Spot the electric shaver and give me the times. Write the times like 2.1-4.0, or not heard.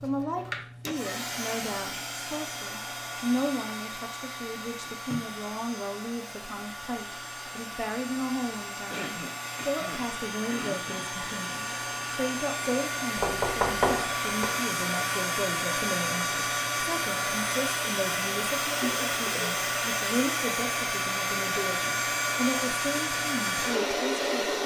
not heard.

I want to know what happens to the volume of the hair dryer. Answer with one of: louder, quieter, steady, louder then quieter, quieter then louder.
louder.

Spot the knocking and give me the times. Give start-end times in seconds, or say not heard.
13.2-14.5.